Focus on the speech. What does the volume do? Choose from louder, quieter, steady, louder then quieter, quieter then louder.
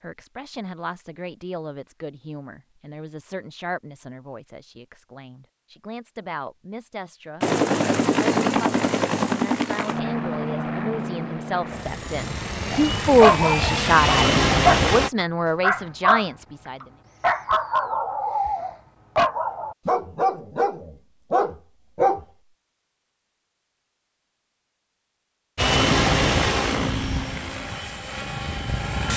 louder.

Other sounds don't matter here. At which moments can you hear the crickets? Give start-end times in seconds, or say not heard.
not heard.